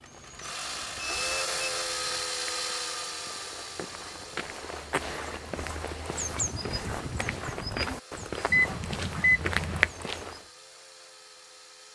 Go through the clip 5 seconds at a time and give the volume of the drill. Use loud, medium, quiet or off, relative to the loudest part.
loud, quiet, quiet.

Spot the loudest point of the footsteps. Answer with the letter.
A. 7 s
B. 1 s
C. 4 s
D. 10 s
D.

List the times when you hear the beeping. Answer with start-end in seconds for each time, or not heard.
0.8-2.2, 8.5-9.9.